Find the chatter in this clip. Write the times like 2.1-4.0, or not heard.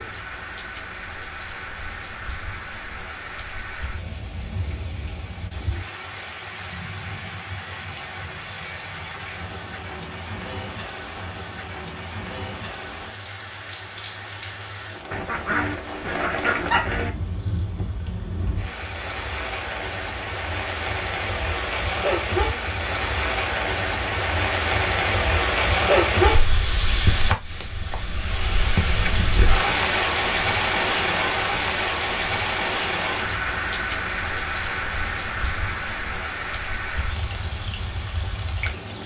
not heard.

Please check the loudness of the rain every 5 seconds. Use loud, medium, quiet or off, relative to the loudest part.
quiet, quiet, quiet, medium, loud, loud, loud, medium.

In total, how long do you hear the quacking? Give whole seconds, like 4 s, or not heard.
2 s.